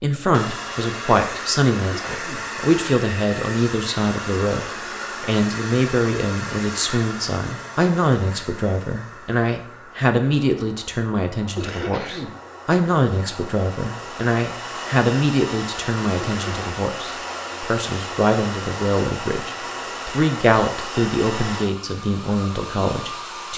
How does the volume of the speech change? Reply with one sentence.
The loudness of the speech stays about the same.